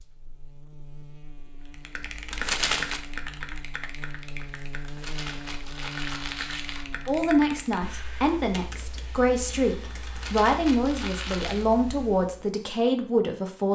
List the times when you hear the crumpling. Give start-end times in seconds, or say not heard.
2.3-3.0, 4.8-6.8, 10.1-11.7.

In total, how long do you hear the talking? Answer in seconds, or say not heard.
7 s.